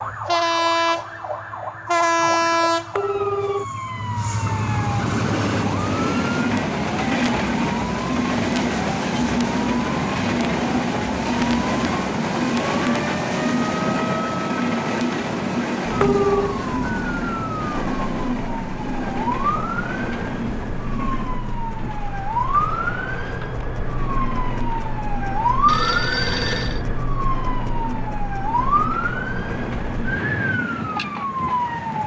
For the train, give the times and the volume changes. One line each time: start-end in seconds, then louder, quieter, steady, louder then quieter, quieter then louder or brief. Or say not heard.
0.0-32.0 quieter.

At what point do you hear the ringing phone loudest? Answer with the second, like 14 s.
16 s.